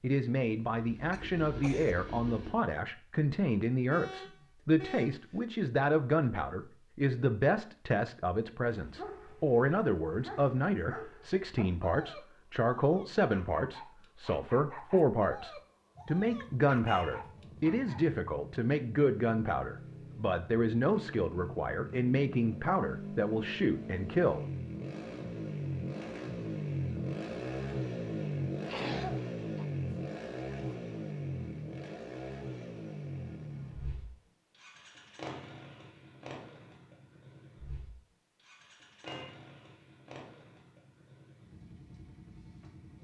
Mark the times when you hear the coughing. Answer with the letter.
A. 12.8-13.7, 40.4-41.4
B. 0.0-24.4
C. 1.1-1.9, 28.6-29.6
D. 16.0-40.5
C.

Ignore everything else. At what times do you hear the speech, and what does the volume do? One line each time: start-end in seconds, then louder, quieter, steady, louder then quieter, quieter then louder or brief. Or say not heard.
0.0-24.4 steady.